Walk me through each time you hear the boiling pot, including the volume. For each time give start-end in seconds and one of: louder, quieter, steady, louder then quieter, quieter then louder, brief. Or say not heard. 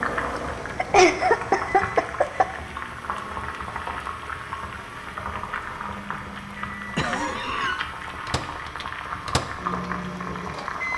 0.0-10.9 steady.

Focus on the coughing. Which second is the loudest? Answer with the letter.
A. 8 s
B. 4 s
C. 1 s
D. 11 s
C.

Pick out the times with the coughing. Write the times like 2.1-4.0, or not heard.
0.3-2.5, 7.0-7.8.